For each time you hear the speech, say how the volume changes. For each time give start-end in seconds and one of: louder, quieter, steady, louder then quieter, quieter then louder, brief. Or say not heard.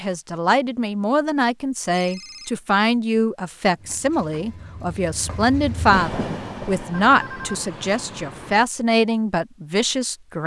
0.0-10.4 steady.